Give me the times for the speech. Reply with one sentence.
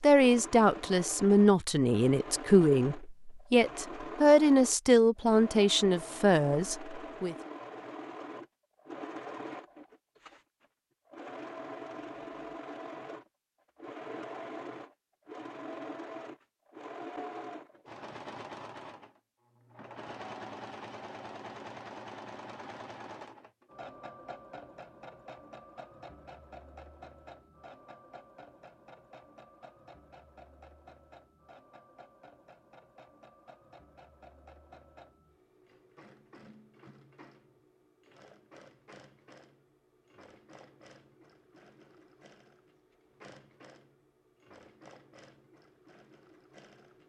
The speech can be heard from 0.0 to 7.3 s.